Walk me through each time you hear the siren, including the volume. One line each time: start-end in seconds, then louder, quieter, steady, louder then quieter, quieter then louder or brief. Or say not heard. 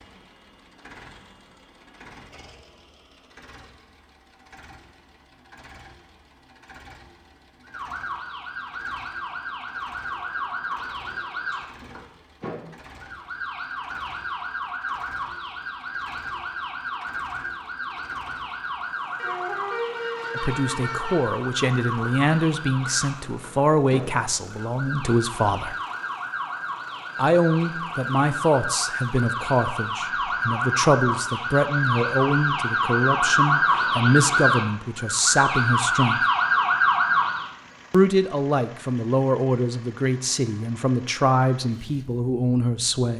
7.7-37.5 louder.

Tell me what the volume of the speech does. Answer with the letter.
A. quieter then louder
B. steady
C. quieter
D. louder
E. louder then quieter
B.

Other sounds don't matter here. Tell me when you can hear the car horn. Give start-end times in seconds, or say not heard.
19.1-21.4.